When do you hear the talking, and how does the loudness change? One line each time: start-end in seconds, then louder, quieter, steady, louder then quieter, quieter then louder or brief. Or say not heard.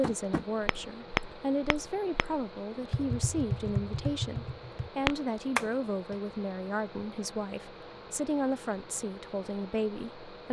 0.0-10.4 steady.